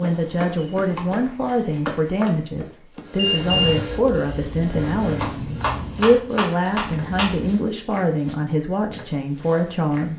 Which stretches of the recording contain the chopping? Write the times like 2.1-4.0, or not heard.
0.8-1.2, 5.2-7.5.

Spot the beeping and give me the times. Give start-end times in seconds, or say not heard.
3.1-3.8.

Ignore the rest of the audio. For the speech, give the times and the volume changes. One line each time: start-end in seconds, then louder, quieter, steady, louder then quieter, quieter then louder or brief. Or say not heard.
0.0-10.1 steady.